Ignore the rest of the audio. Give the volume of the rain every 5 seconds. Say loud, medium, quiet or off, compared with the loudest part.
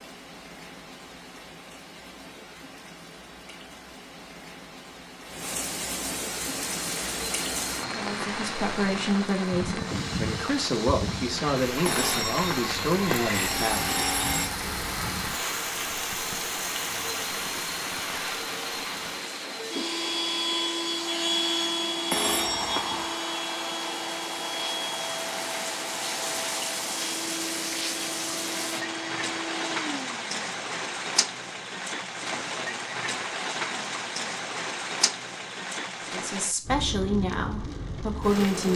quiet, loud, loud, loud, medium, loud, loud, loud.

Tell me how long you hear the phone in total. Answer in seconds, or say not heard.
4 s.